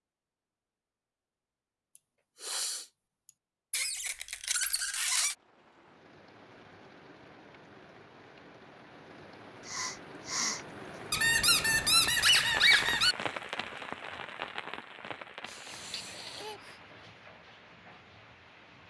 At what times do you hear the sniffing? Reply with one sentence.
The sniffing can be heard from 1.9 to 3.3 s, from 9.7 to 10.7 s and from 15.4 to 16.8 s.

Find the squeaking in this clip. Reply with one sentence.
You can hear the squeaking from 3.7 to 5.3 s and from 11.1 to 13.2 s.